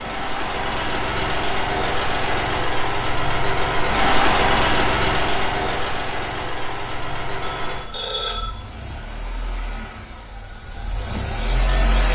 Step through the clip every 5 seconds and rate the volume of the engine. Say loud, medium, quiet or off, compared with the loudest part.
loud, medium, medium.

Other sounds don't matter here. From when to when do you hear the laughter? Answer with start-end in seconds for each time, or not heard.
not heard.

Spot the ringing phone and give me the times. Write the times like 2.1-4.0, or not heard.
7.4-8.5.